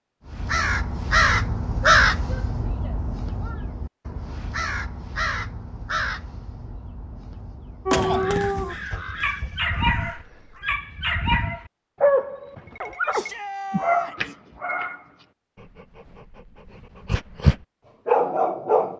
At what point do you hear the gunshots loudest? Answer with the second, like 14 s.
8 s.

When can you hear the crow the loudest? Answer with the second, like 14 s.
2 s.